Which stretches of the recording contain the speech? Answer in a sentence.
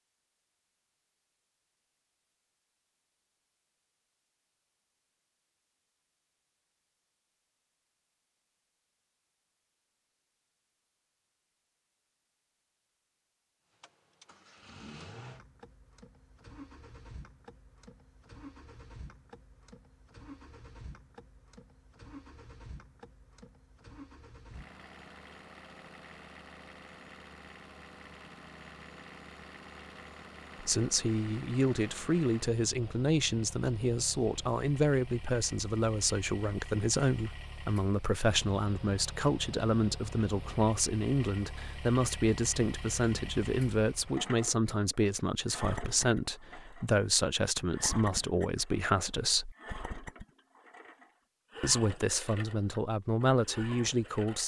You can hear the speech from 30.6 to 49.5 s and from 51.6 to 54.4 s.